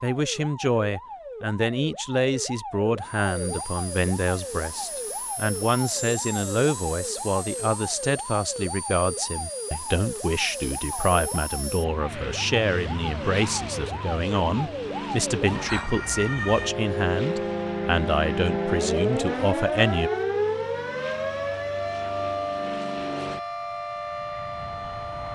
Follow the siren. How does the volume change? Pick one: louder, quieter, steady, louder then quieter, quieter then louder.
louder.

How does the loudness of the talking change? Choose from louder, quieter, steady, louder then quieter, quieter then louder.
steady.